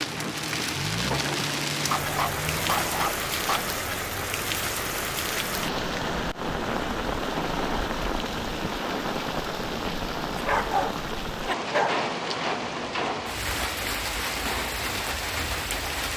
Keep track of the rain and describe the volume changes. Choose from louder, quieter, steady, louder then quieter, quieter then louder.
steady.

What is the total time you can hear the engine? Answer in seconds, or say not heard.
3 s.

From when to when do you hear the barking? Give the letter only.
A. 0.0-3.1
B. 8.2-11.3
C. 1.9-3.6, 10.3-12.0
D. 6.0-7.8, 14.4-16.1
C.